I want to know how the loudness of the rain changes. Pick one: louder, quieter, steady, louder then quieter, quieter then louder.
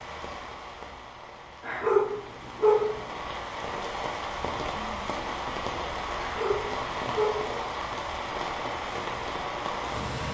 louder.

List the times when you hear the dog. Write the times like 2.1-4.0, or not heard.
1.6-3.0, 6.2-7.5.